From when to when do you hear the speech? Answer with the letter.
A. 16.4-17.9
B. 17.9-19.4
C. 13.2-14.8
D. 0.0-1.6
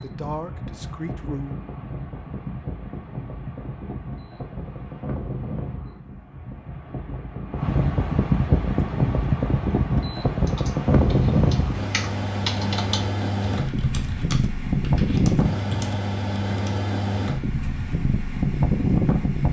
D.